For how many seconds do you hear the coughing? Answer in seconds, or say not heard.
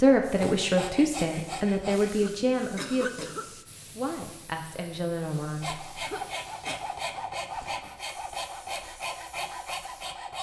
2 s.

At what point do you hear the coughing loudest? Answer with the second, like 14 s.
3 s.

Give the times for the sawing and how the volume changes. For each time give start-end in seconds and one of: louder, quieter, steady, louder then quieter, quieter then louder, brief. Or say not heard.
0.2-2.1 brief
5.6-10.3 steady.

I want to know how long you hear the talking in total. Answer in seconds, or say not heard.
6 s.